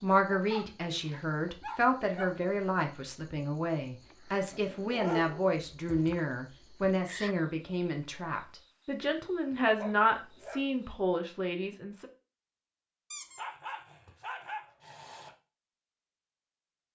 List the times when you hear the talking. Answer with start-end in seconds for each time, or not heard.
0.0-12.1.